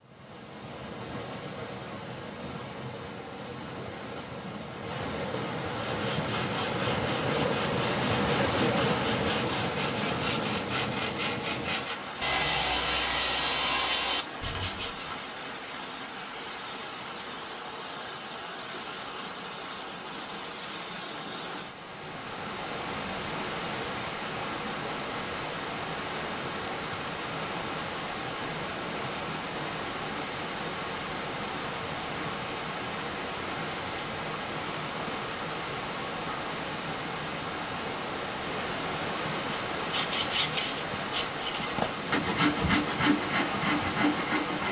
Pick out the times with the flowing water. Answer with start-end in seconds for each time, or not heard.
0.0-44.6.